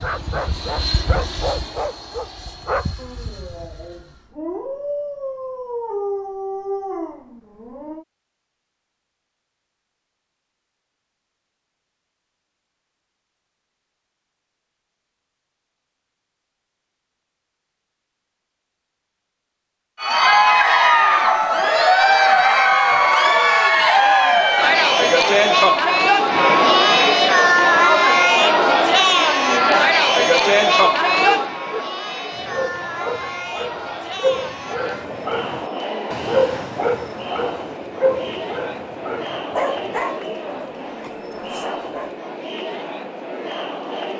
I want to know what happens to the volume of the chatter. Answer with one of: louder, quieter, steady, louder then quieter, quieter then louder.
quieter.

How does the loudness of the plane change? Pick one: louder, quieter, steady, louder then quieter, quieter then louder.
quieter.